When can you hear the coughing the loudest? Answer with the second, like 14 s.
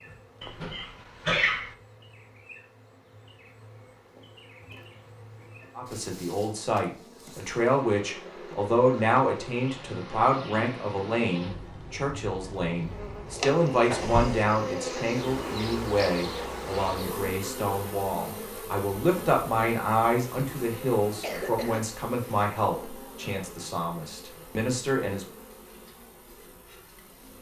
1 s.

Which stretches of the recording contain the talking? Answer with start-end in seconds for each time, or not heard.
5.8-25.2.